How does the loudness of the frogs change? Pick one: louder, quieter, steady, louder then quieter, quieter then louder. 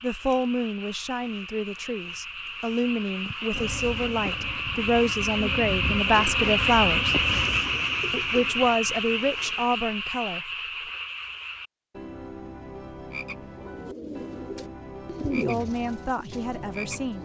louder then quieter.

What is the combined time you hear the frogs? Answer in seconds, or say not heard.
17 s.